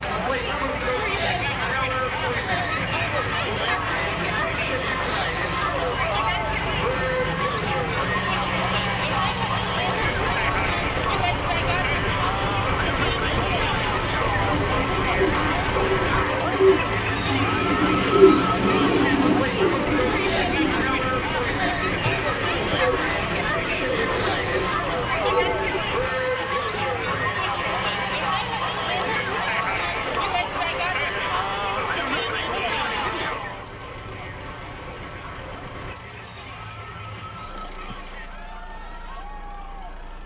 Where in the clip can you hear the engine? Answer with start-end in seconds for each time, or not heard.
0.0-40.2.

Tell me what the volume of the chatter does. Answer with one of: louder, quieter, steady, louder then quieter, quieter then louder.
quieter.